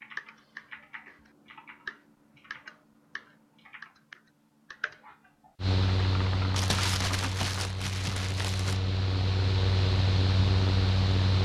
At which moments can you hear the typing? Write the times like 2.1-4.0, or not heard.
0.0-7.3.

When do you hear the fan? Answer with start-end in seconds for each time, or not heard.
5.6-11.4.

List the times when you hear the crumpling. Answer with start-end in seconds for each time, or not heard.
6.5-8.9.